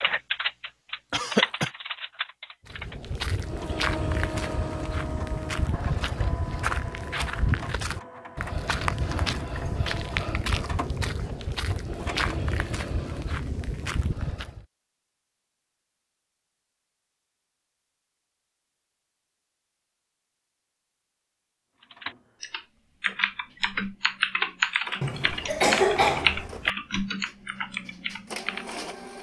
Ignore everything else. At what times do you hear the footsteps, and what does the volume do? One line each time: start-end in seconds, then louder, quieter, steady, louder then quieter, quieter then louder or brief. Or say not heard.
2.6-14.7 steady.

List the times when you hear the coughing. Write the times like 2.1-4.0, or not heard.
1.1-1.7, 25.0-26.7.